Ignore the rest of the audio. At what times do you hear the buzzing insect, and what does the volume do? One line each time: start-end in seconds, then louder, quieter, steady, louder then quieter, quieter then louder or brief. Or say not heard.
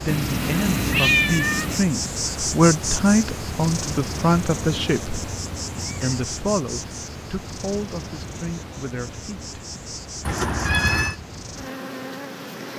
0.0-12.7 quieter.